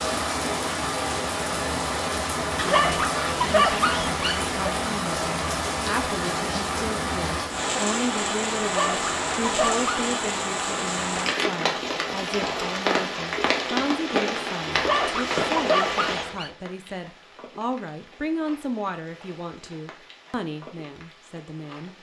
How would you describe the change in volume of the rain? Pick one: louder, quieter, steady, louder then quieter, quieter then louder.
quieter.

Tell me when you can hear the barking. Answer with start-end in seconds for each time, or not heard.
2.5-4.5, 8.6-9.9, 14.7-16.5.